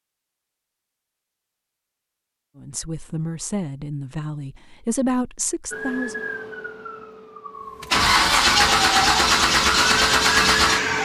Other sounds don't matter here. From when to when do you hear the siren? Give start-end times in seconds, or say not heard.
5.7-11.0.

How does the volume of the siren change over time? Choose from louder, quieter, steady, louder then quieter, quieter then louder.
quieter then louder.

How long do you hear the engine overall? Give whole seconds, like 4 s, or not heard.
3 s.